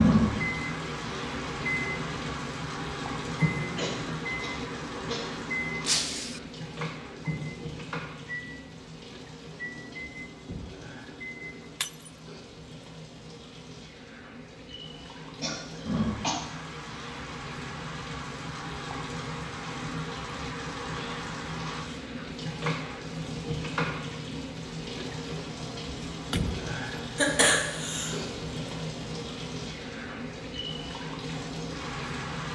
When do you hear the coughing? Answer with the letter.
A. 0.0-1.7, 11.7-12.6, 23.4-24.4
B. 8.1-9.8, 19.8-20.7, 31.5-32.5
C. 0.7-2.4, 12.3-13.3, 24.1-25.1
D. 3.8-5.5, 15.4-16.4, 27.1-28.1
D.